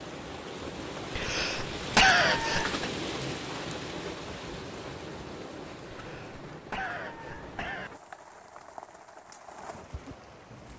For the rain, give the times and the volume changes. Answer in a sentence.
The rain can be heard from 0.0 to 10.7 s, getting quieter.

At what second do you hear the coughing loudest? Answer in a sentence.
The loudest moment of the coughing is at 2 seconds.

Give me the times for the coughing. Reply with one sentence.
The coughing can be heard from 1.1 to 2.8 s and from 5.9 to 7.9 s.